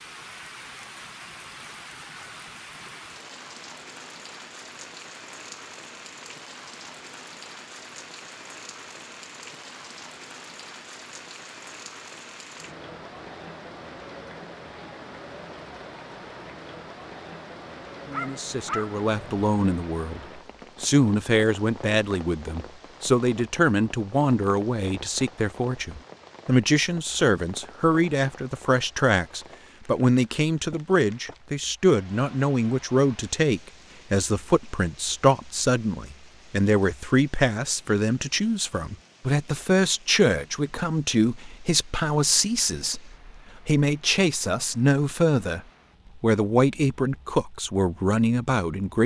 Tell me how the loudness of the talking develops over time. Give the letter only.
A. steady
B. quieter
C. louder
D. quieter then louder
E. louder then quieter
A.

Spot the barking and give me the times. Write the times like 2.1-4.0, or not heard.
18.1-19.4.